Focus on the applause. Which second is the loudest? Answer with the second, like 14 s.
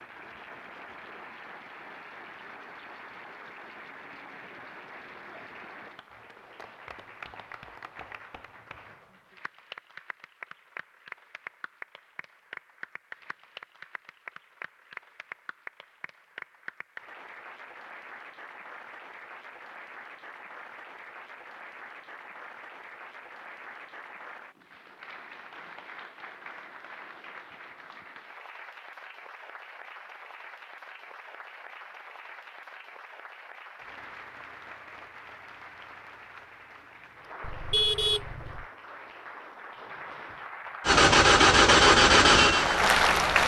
43 s.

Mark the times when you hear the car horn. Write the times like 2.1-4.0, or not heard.
37.4-38.6.